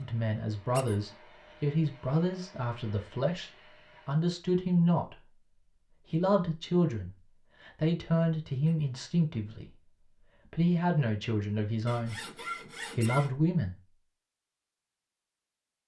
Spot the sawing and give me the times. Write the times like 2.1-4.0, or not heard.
11.8-13.3.